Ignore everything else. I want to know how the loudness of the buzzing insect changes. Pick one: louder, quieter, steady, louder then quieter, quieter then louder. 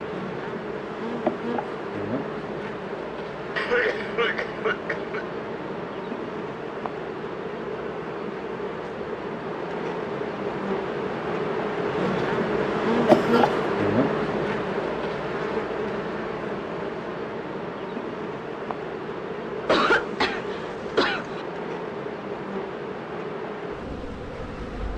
louder then quieter.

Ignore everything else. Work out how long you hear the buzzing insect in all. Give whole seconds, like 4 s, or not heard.
25 s.